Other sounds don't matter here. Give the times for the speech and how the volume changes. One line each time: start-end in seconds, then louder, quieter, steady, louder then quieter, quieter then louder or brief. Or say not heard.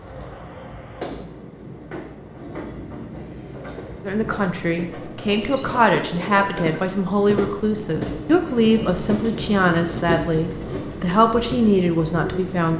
4.0-12.7 steady.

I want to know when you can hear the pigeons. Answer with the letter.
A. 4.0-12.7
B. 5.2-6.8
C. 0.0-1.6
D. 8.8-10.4
B.